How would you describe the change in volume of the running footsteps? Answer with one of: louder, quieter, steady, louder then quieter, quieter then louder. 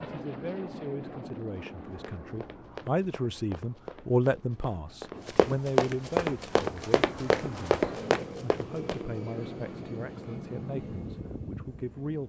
louder.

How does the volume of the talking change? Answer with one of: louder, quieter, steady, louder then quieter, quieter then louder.
louder then quieter.